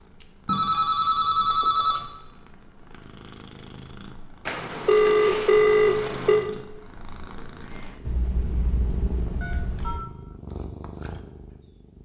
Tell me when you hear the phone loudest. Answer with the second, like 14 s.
6 s.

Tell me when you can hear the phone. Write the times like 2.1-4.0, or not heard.
0.5-2.0, 4.5-6.5, 8.0-10.1.